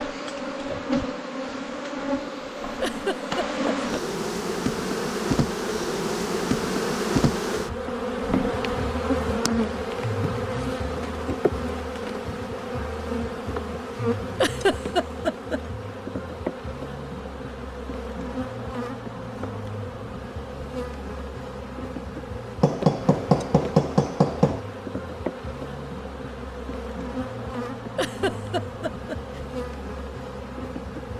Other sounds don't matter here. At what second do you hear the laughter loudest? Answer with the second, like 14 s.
15 s.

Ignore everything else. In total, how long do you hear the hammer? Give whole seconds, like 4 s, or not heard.
2 s.